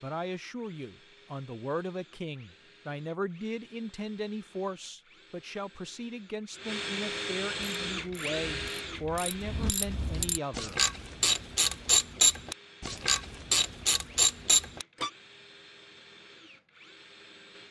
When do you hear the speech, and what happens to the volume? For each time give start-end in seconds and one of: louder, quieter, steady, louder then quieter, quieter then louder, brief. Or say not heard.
0.0-10.8 steady.